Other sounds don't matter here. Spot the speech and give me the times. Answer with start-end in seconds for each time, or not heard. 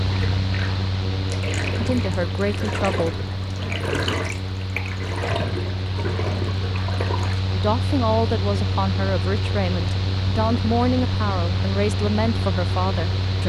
1.8-3.2, 7.5-13.4.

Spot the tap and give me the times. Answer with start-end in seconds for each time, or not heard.
0.0-7.5.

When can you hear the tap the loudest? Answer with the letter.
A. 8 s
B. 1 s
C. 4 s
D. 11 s
C.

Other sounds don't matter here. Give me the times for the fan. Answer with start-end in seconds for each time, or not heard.
0.0-13.4.